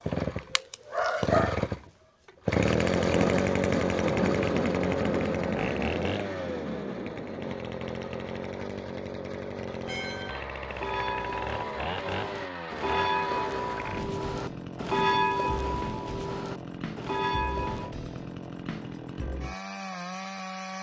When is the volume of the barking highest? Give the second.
1 s.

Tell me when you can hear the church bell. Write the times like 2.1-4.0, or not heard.
9.8-17.9.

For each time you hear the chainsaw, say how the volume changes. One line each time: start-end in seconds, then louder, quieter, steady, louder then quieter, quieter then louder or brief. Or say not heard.
0.0-20.7 quieter.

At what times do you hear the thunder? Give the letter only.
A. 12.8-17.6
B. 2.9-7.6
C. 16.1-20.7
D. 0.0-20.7
B.